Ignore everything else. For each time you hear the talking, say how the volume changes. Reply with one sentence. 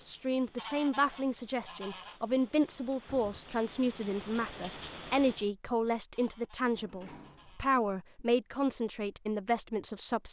You can hear the talking from 0.0 to 10.2 s, at a steady volume.